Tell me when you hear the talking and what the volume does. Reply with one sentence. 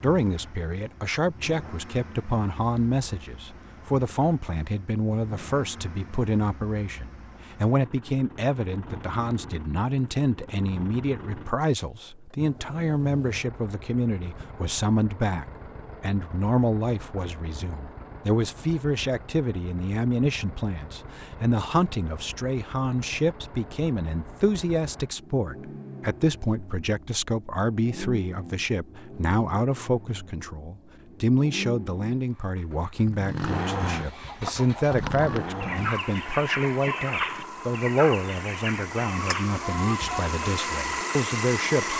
You can hear the talking from 0.0 to 41.9 s, at a steady volume.